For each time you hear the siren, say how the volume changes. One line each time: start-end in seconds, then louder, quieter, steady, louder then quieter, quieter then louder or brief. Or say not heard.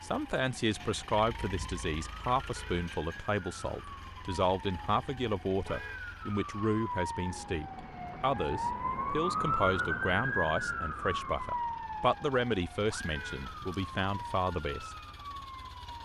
0.0-16.0 louder then quieter.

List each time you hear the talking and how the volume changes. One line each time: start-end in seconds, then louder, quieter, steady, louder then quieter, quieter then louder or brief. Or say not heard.
0.0-14.9 steady.